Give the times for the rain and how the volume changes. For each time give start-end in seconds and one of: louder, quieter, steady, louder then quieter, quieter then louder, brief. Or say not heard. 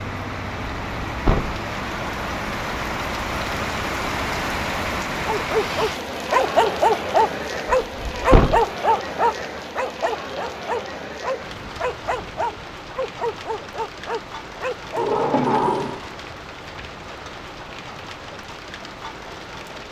0.0-19.8 quieter.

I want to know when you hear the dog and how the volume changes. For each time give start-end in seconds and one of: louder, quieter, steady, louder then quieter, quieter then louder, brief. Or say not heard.
5.2-15.1 quieter.